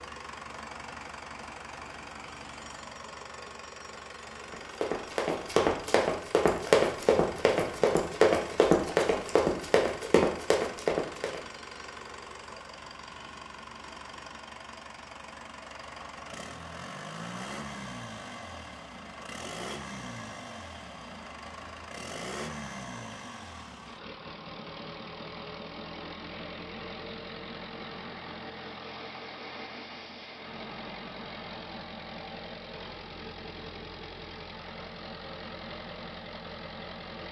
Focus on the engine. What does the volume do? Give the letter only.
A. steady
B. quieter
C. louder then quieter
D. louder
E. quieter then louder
A.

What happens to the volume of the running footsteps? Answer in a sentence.
The loudness of the running footsteps stays about the same.